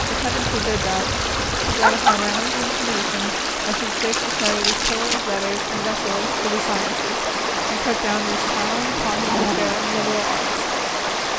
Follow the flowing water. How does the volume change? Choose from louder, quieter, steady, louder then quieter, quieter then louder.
steady.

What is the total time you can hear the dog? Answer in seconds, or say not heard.
2 s.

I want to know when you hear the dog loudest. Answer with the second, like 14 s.
2 s.